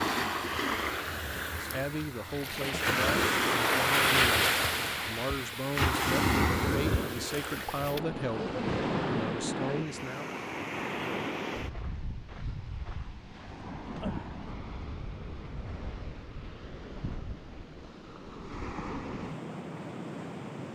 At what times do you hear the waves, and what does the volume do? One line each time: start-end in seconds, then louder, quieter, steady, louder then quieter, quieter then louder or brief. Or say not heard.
0.0-20.7 quieter.